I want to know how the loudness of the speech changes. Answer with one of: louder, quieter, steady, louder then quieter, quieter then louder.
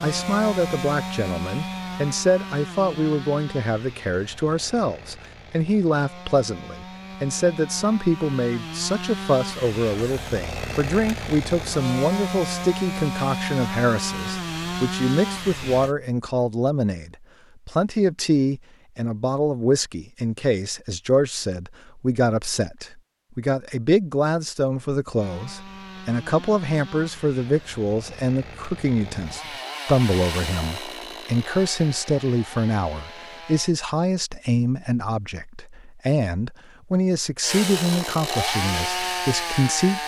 steady.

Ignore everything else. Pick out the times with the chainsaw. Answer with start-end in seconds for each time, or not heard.
0.0-15.9, 25.1-33.8, 37.4-40.0.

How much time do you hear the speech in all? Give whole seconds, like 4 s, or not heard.
40 s.